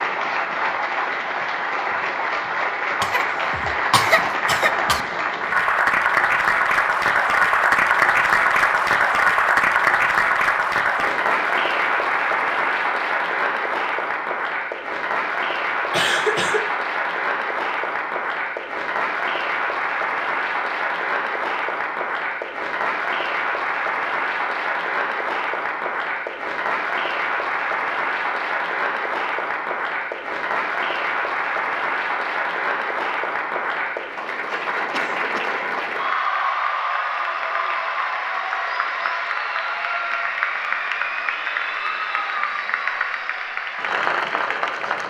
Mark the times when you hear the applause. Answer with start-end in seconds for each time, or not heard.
0.0-45.0.